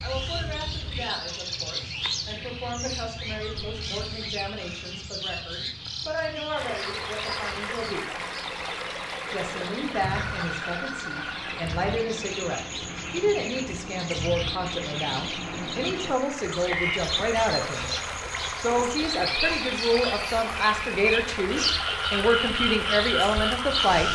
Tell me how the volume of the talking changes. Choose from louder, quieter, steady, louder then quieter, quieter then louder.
louder.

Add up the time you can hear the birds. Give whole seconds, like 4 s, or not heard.
24 s.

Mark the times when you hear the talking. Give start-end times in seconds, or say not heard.
0.0-8.1, 9.3-17.9, 18.6-24.1.